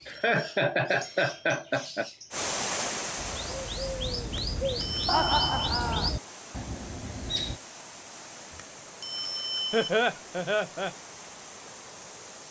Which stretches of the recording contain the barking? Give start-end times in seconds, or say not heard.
not heard.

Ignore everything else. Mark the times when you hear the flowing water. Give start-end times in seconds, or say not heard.
2.3-12.4.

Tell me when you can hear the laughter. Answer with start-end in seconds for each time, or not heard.
0.1-2.1, 5.0-6.1, 9.7-10.9.